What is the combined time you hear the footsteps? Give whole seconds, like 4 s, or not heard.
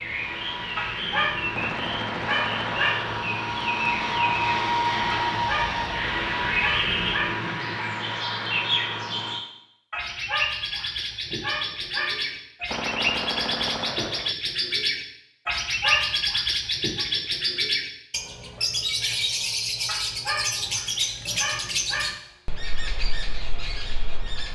not heard.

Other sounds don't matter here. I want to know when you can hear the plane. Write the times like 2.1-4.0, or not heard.
0.0-9.4.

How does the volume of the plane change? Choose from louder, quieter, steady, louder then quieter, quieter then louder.
louder then quieter.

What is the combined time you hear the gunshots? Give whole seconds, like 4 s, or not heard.
3 s.